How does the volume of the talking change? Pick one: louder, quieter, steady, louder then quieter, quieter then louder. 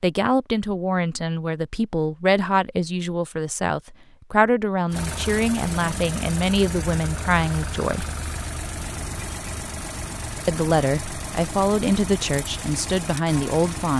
steady.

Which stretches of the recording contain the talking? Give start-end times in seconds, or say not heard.
0.0-8.1, 10.4-13.9.